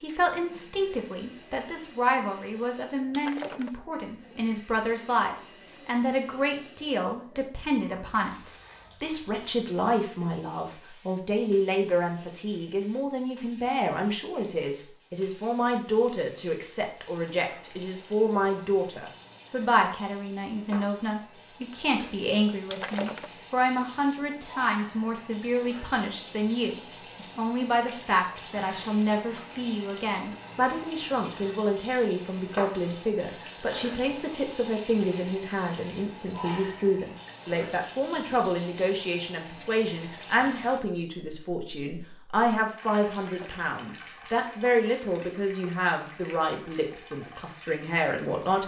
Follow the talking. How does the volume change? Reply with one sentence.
The loudness of the talking stays about the same.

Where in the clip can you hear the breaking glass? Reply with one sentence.
The breaking glass can be heard from 3.1 to 3.8 s, from 22.7 to 23.4 s and from 43.1 to 43.7 s.